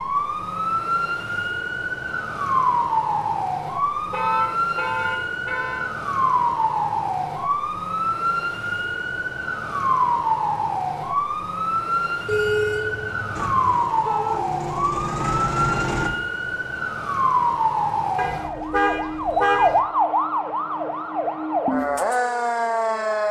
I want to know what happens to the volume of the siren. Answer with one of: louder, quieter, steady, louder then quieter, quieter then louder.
steady.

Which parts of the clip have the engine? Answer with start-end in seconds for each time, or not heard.
13.3-16.1.